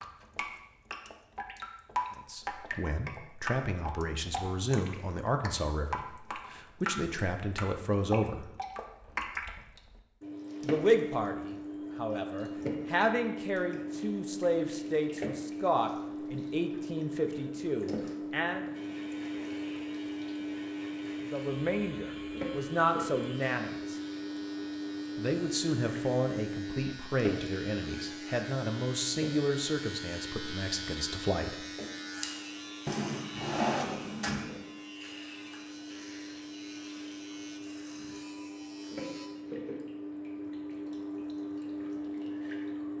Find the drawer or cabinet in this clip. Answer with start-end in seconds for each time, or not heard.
32.9-34.5.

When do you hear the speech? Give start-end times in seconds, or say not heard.
2.1-8.4, 10.6-18.7, 21.2-24.0, 25.1-31.6.